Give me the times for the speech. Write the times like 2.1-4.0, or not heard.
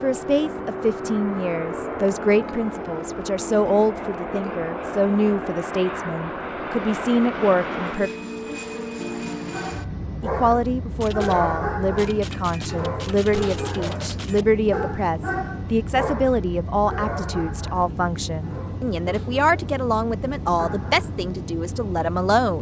0.0-8.1, 10.2-22.5.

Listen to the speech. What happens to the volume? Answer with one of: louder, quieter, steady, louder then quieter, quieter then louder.
steady.